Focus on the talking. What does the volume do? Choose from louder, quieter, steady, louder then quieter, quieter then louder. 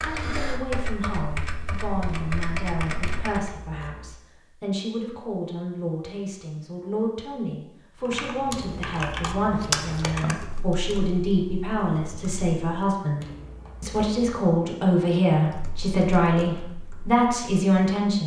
louder.